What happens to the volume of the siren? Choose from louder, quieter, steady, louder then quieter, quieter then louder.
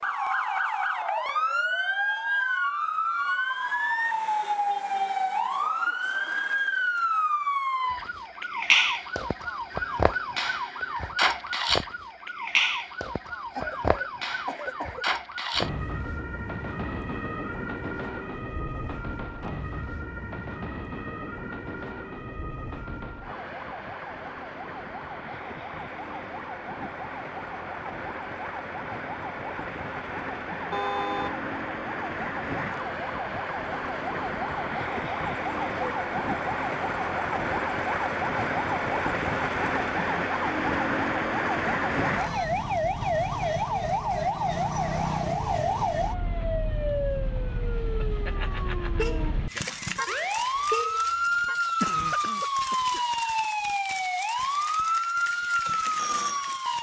quieter then louder.